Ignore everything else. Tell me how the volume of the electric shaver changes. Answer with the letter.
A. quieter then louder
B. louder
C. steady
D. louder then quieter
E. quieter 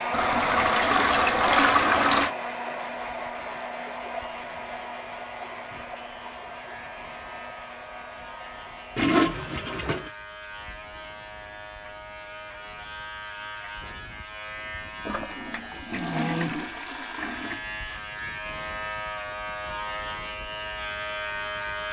B.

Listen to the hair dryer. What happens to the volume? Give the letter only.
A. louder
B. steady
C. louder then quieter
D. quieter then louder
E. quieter
E.